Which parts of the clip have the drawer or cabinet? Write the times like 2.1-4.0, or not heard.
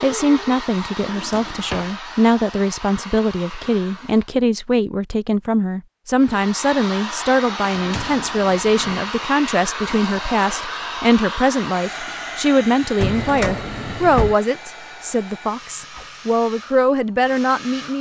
0.9-1.9, 7.7-9.0, 12.9-14.3.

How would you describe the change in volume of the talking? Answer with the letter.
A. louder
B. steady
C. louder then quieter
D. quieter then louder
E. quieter
B.